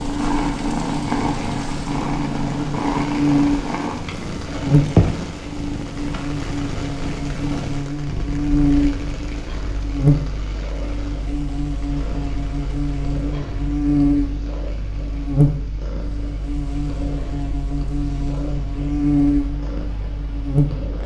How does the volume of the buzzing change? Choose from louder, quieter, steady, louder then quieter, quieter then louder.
steady.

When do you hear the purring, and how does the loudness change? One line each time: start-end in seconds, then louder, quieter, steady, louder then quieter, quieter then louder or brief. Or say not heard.
0.0-21.0 quieter.